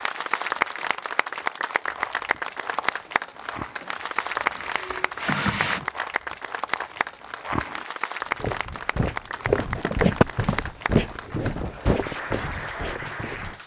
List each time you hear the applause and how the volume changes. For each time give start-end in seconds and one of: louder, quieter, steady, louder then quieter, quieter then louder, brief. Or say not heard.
0.0-13.6 quieter.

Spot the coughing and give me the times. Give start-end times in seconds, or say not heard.
4.4-5.8.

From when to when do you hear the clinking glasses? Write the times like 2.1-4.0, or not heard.
not heard.